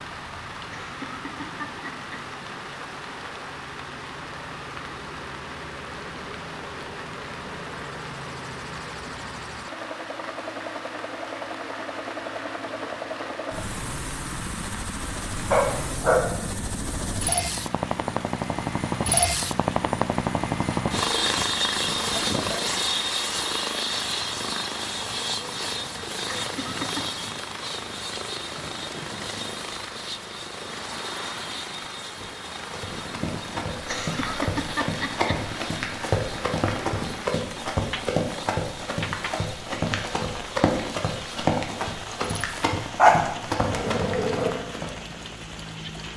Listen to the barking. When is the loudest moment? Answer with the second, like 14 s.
43 s.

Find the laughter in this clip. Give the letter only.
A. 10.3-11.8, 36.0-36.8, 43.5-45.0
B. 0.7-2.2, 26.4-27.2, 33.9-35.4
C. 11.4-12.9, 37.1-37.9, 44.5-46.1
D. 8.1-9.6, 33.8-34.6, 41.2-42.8
B.